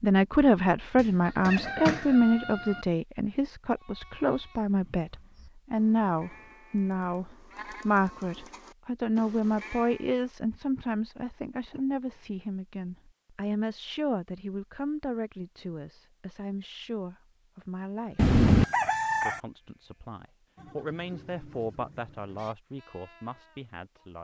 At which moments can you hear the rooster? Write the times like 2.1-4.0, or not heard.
0.9-2.9, 18.1-19.4.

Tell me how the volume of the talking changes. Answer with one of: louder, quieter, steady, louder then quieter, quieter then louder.
quieter.